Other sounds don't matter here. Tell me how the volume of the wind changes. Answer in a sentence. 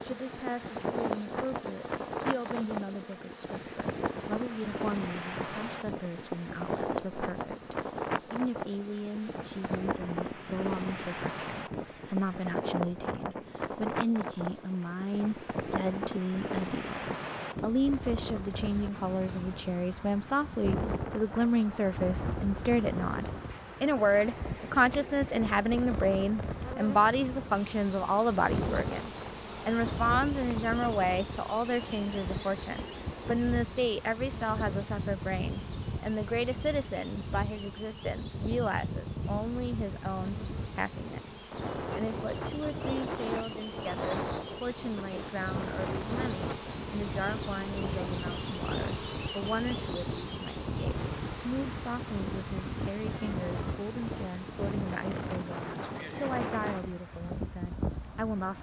The loudness of the wind stays about the same.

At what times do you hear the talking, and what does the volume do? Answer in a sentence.
You can hear the talking from 0.0 to 58.5 s, getting louder then quieter.